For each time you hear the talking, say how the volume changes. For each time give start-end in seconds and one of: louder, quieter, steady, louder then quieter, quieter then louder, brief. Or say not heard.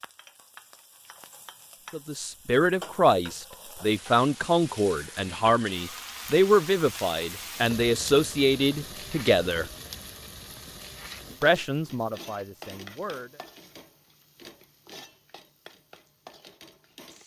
1.9-9.7 steady
11.4-13.4 brief.